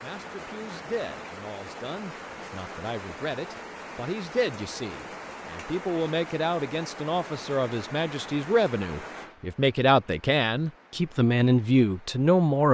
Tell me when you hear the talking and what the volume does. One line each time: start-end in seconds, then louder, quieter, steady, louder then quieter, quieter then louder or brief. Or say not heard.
0.0-12.7 louder.